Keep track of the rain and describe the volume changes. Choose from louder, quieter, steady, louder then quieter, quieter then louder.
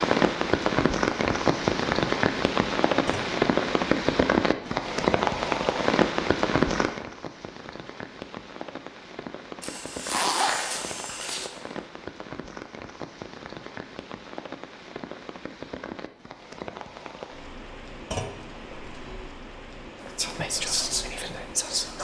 quieter.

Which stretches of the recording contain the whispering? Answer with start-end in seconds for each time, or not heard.
20.0-21.9.